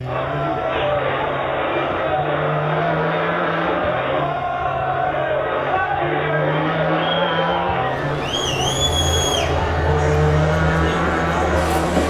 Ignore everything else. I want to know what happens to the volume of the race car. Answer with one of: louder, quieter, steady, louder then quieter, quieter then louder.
louder.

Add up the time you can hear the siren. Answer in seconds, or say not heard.
not heard.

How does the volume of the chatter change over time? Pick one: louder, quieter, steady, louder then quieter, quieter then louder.
steady.